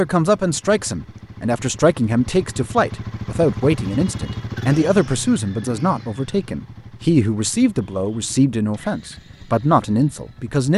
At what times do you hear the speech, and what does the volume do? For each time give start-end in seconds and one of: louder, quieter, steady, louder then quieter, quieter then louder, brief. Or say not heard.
0.0-10.7 steady.